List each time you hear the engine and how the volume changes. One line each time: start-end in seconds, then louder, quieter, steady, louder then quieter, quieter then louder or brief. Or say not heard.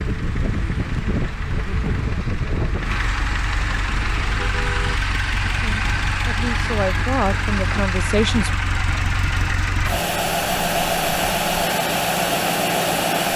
0.0-13.3 louder.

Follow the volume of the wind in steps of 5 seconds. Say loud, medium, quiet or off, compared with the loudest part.
loud, medium, medium.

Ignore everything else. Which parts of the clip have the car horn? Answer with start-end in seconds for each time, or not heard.
3.9-5.0.